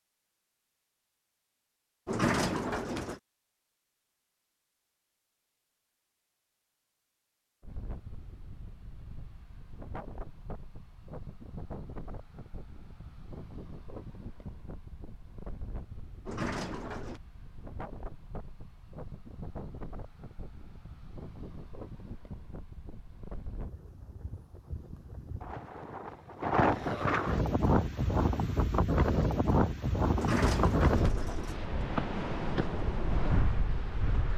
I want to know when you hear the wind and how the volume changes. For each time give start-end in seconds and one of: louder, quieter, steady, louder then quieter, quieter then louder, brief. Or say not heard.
7.6-34.3 louder.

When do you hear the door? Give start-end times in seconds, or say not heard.
2.0-3.2, 16.2-17.2, 30.1-31.6.